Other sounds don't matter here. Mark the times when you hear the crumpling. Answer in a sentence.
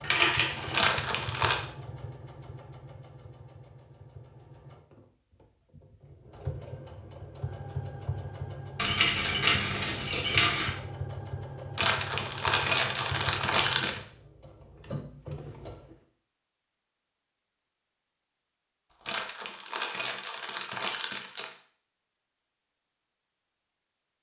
The crumpling can be heard from 0.7 to 1.6 s, from 11.8 to 14.0 s and from 19.1 to 21.6 s.